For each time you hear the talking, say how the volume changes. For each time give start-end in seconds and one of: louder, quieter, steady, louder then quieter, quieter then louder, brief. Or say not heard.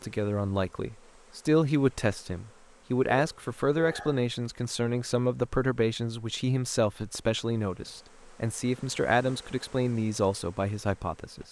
0.0-11.4 steady.